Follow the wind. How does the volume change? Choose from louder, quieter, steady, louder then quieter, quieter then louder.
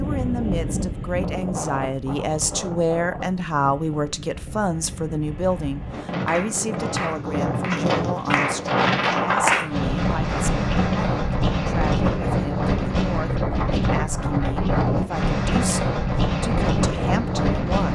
louder.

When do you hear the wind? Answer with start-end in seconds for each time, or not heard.
0.0-17.9.